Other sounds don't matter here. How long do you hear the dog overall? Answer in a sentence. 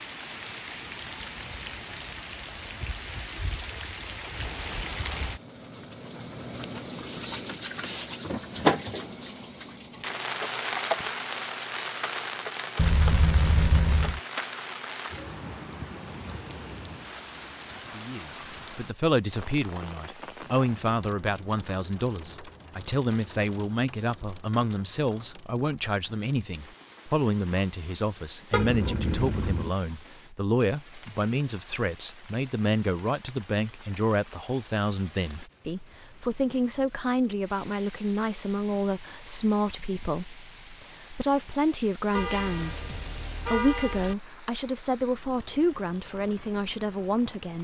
The dog can't be heard in this clip.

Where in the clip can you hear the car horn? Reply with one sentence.
The car horn can be heard from 12.8 to 14.2 s, from 28.5 to 29.7 s and from 42.1 to 44.1 s.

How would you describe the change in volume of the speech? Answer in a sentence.
The loudness of the speech stays about the same.